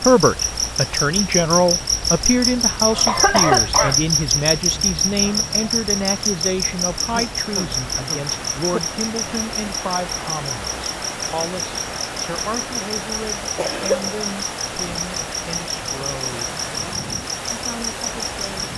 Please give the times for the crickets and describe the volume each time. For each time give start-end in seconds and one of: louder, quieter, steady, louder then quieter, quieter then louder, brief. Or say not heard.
0.0-18.7 quieter.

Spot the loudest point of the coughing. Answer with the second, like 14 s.
3 s.